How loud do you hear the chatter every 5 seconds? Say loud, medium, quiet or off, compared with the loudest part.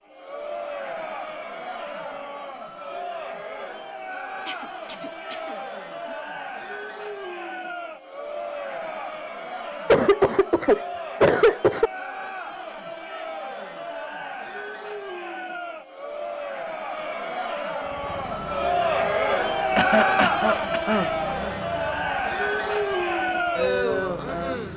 medium, medium, medium, loud, loud.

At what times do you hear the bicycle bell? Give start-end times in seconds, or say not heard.
not heard.